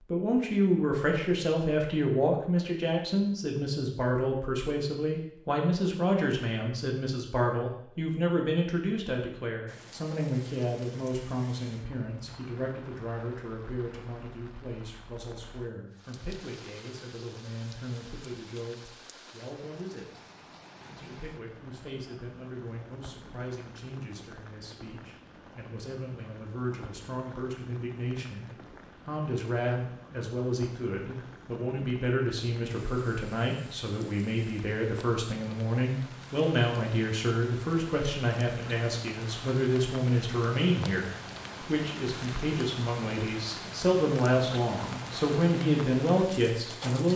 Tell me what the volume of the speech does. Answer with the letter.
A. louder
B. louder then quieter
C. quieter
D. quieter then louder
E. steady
D.